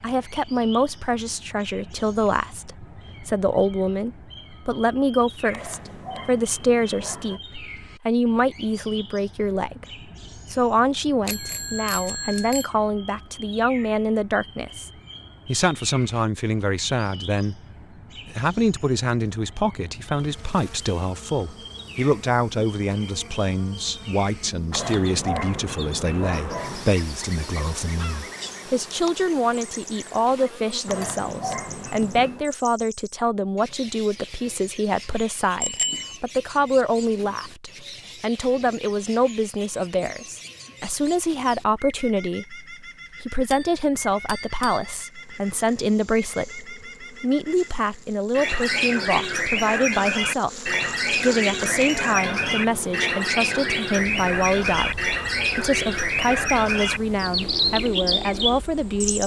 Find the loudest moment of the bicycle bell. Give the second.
36 s.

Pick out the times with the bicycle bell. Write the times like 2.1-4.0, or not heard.
11.2-12.7, 35.6-36.2, 43.5-44.9.